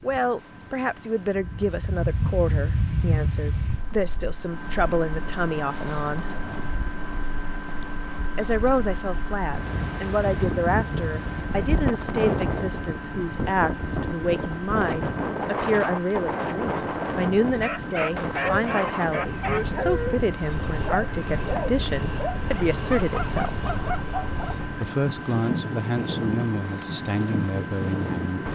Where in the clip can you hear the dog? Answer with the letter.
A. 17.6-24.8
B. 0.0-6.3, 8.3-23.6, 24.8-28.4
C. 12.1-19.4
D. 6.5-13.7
A.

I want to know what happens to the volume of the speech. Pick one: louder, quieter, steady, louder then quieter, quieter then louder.
steady.